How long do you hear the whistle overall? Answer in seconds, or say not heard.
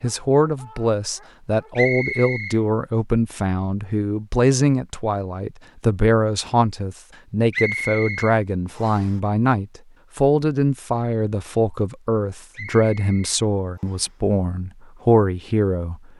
4 s.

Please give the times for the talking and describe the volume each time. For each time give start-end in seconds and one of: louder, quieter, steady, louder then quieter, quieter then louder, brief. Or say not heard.
0.0-16.0 steady.